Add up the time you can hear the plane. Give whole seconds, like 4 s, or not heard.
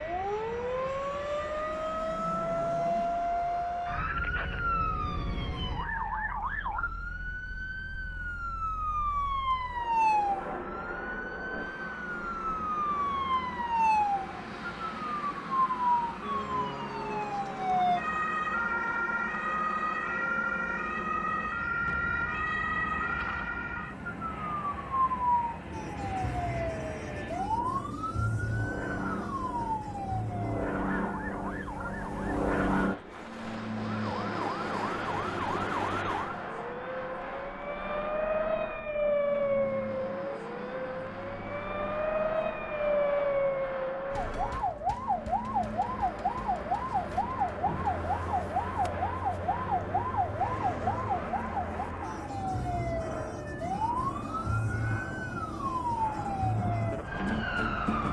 58 s.